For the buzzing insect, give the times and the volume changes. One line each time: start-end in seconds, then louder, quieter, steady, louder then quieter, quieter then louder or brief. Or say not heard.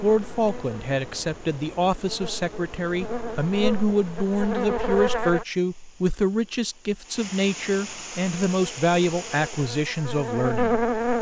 0.0-5.5 louder
8.2-11.1 brief.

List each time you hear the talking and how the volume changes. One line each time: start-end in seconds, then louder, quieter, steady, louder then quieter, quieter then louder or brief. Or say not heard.
0.0-11.1 steady.